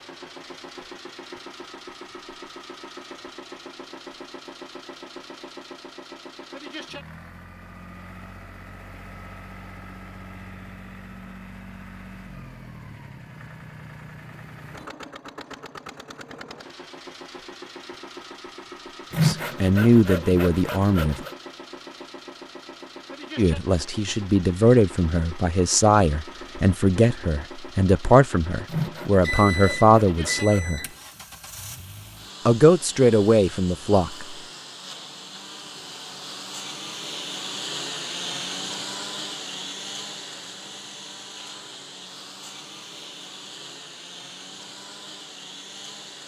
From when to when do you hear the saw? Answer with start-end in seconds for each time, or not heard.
19.1-21.3, 28.6-30.8.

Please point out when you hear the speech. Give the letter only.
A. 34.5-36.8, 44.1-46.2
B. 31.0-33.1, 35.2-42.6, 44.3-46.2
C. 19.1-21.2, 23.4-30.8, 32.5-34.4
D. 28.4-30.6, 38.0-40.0
C.